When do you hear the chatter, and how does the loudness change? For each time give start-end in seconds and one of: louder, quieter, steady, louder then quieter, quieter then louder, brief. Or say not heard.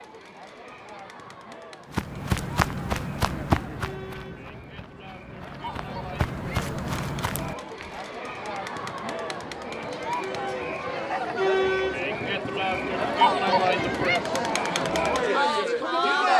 0.0-16.3 louder.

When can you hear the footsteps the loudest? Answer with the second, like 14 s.
3 s.